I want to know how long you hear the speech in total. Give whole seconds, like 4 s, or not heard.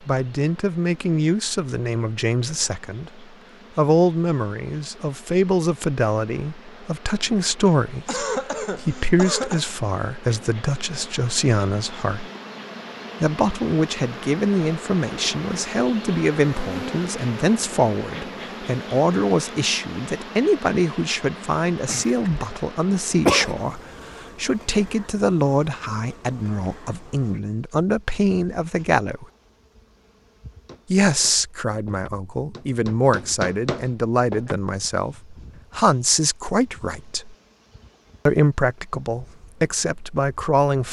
37 s.